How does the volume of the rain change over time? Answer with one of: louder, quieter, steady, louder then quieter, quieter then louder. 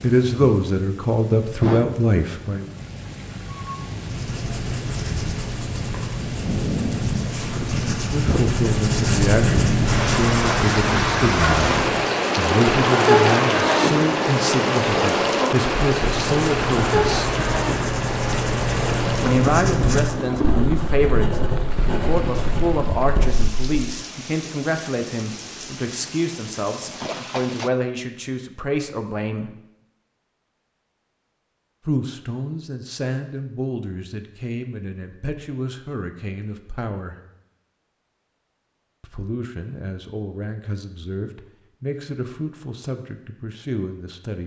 louder then quieter.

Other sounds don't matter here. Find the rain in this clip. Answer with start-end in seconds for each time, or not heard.
0.0-27.7.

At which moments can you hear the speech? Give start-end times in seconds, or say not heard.
0.0-2.8, 8.0-11.8, 12.3-17.3, 19.1-29.6, 31.9-37.2, 39.0-44.4.